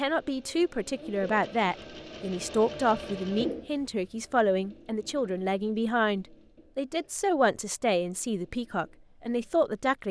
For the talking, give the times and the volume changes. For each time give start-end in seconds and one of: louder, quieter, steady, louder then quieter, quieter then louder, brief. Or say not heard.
0.0-10.0 steady.